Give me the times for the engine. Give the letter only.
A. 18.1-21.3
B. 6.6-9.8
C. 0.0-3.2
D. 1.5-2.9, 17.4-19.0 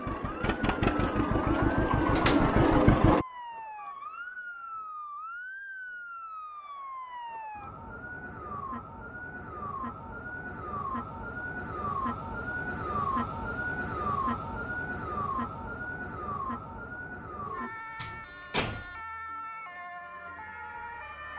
C.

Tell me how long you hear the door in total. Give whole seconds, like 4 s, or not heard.
3 s.